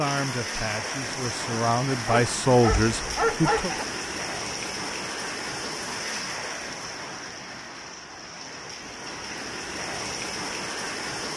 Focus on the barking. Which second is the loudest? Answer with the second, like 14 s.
3 s.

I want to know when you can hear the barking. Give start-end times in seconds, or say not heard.
2.1-3.9.